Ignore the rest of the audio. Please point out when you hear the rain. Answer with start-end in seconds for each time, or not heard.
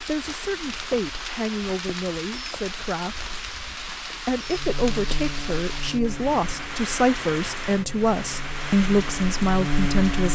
0.0-10.3.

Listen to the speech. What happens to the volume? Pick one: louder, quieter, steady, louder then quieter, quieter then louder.
louder.